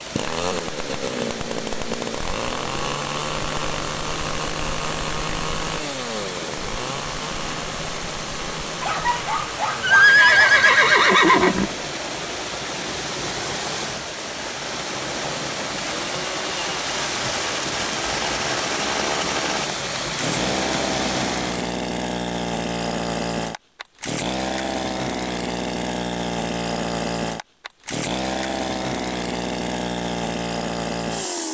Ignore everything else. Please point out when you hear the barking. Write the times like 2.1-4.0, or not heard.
8.8-10.7.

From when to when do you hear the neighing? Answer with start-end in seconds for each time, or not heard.
9.8-11.7.